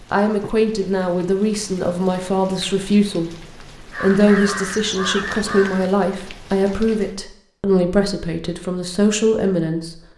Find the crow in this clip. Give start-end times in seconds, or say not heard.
3.9-6.0.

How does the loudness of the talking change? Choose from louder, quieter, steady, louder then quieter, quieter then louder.
steady.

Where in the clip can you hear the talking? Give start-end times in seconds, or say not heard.
0.1-9.9.